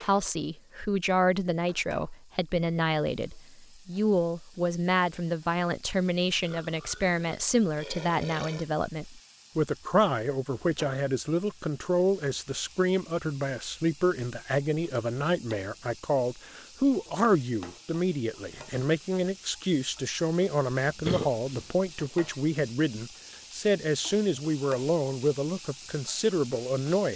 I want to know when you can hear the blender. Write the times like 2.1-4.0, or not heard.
not heard.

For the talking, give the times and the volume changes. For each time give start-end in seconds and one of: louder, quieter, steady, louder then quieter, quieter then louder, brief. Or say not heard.
0.0-27.1 steady.